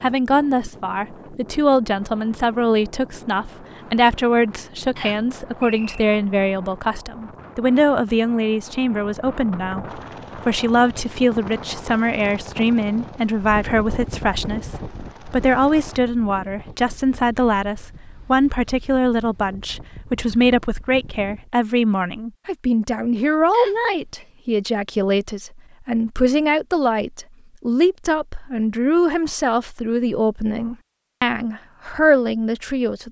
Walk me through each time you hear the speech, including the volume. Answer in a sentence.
You can hear the speech from 0.0 to 33.0 s, at a steady volume.